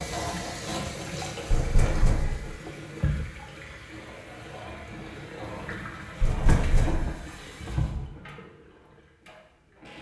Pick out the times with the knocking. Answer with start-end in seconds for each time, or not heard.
1.5-2.6, 6.2-7.1.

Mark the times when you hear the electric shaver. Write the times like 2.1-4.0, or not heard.
not heard.